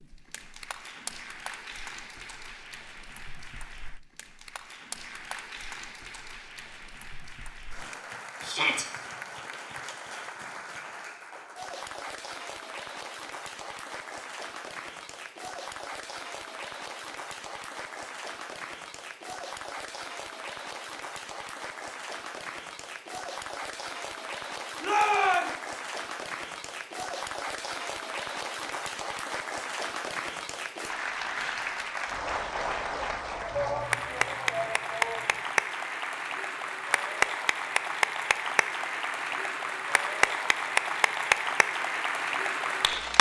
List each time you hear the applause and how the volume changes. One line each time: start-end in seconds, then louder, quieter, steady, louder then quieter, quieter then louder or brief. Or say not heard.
0.0-43.1 louder.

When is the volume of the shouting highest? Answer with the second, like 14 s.
25 s.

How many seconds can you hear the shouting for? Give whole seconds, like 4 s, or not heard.
3 s.